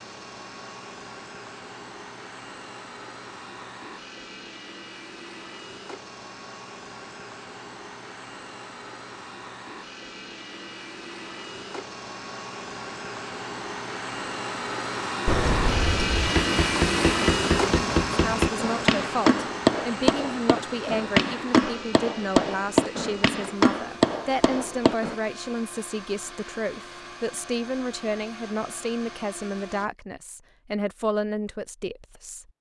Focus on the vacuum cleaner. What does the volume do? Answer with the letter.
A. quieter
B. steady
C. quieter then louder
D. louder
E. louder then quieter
E.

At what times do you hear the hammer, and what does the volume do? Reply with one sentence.
You can hear the hammer from 16.2 to 25.1 s, at a steady volume.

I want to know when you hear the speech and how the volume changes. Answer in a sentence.
The speech can be heard from 18.1 to 32.5 s, at a steady volume.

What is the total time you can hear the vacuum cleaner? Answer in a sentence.
You can hear the vacuum cleaner for 30 seconds altogether.